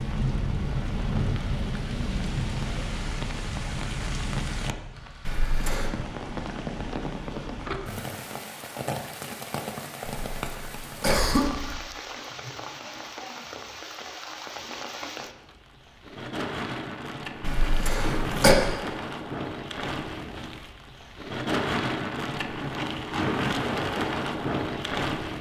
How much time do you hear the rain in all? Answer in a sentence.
The rain can be heard for 25 seconds in total.